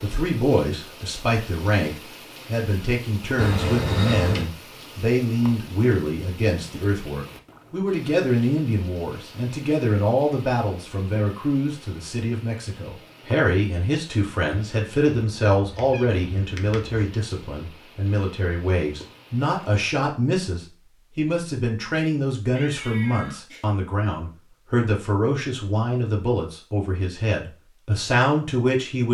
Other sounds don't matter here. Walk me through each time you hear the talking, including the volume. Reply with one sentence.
The talking can be heard from 0.0 to 29.0 s, at a steady volume.